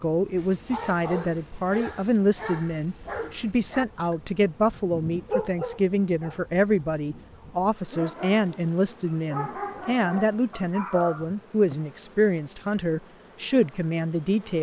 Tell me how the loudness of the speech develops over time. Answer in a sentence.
The volume of the speech stays about the same.